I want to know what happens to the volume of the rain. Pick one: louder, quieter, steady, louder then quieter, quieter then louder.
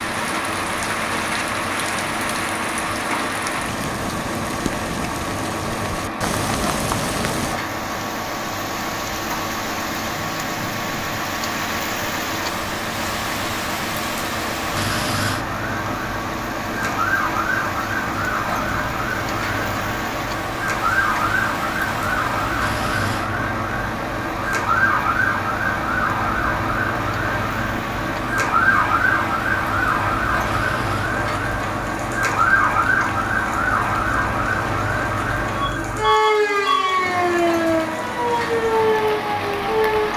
quieter.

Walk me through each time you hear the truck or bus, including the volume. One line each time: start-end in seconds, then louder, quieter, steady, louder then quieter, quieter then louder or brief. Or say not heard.
0.0-40.1 steady.